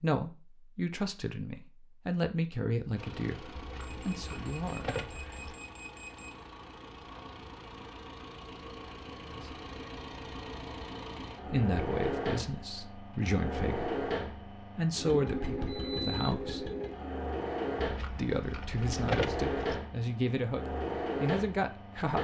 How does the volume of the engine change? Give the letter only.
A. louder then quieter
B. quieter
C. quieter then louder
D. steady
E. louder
E.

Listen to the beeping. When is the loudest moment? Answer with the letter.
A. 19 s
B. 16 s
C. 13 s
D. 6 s
B.